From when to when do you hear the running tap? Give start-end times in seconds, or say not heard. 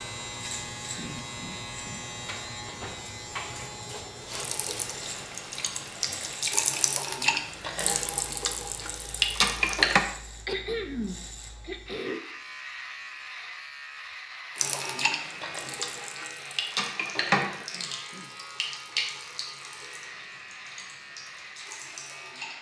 4.3-10.1, 14.6-22.5.